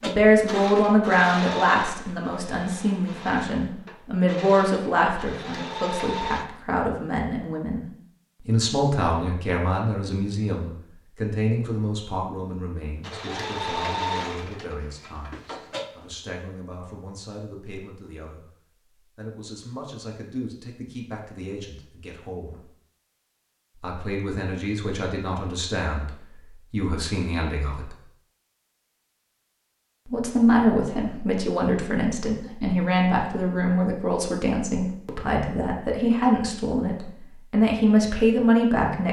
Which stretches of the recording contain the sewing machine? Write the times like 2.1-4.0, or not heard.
0.0-6.5, 13.0-16.1.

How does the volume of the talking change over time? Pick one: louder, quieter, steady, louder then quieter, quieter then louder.
quieter then louder.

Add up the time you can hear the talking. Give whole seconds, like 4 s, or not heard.
35 s.